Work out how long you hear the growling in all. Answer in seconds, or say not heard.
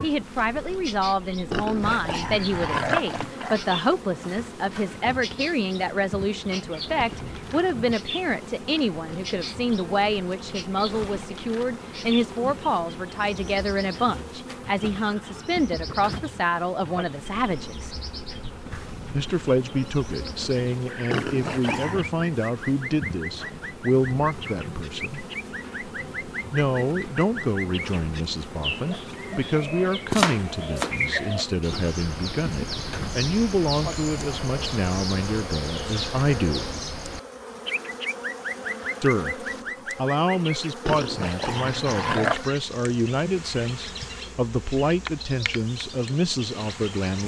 5 s.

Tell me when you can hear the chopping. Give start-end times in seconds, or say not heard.
30.1-31.0.